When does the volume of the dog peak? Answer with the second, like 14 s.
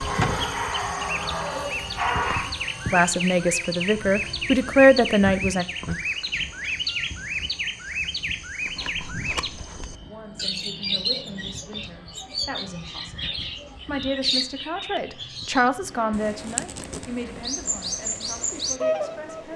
2 s.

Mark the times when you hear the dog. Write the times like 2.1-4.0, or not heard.
0.0-2.5.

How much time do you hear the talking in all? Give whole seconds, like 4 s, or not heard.
12 s.